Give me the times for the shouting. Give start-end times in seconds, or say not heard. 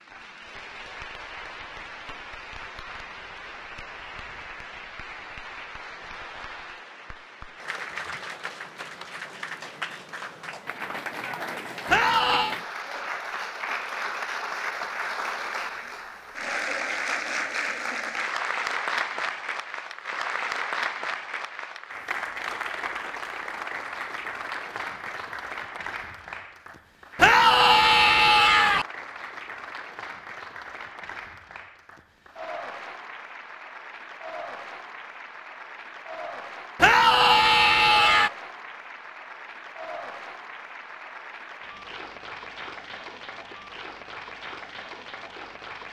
11.8-12.6, 27.1-28.9, 36.8-38.3.